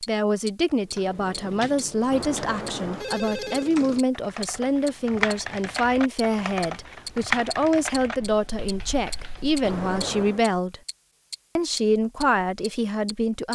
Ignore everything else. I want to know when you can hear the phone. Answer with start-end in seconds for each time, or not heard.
2.1-3.7, 9.6-10.4.